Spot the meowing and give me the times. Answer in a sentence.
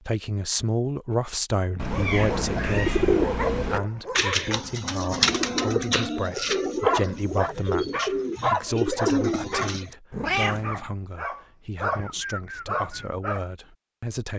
You can hear the meowing from 1.8 to 3.8 s and from 10.1 to 10.8 s.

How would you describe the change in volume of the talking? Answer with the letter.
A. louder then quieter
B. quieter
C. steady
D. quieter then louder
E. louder
B.